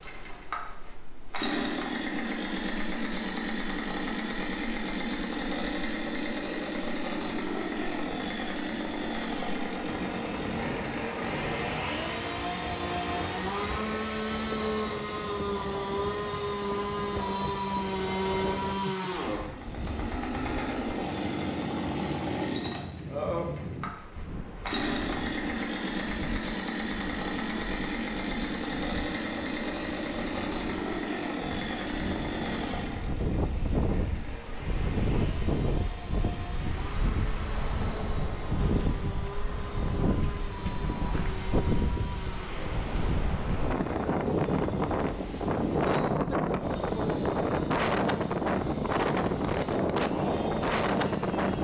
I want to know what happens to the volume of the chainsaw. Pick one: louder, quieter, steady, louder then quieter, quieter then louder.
quieter.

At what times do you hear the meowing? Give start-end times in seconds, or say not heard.
not heard.